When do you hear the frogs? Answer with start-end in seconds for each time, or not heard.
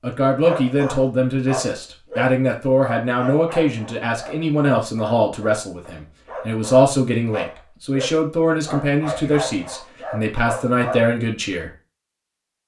not heard.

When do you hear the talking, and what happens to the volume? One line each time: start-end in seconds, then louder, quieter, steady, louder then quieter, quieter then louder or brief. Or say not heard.
0.0-11.7 steady.